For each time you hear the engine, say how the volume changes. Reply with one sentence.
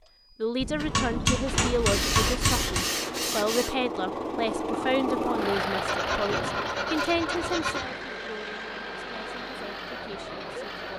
The engine can be heard from 0.0 to 10.9 s, getting louder then quieter.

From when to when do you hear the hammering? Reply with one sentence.
You can hear the hammering from 0.6 to 2.9 s and from 6.3 to 8.1 s.